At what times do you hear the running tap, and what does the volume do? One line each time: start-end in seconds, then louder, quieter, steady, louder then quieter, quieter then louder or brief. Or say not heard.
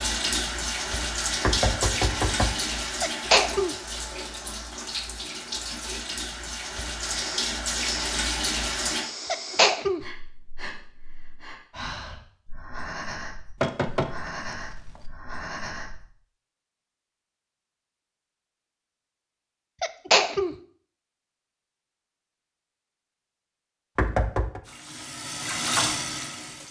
0.0-9.1 quieter then louder
24.6-26.6 brief.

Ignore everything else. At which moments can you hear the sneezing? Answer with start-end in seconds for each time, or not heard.
3.0-3.8, 9.3-10.0, 19.8-20.6.